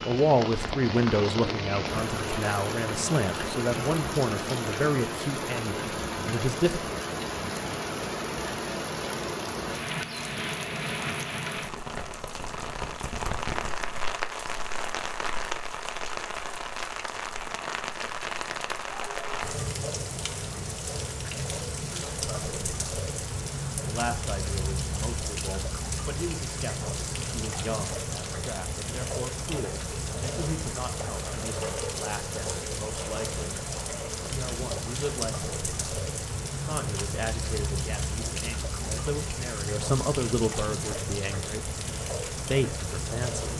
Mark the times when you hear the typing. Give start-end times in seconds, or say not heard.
not heard.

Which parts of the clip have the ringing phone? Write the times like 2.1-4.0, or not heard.
not heard.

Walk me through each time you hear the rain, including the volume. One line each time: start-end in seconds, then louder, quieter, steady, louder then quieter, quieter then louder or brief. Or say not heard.
0.0-43.5 steady.